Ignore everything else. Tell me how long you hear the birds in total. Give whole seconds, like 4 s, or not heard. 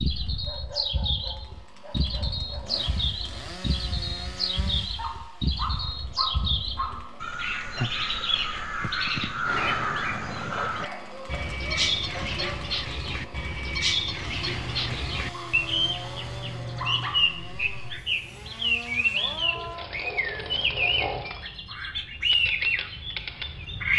24 s.